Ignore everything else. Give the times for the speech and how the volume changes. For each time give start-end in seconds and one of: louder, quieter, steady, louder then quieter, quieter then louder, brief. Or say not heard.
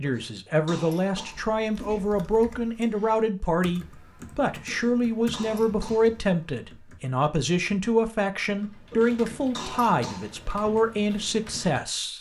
0.0-12.1 steady.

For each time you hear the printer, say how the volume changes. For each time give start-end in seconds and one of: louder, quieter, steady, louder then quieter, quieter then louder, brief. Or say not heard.
not heard.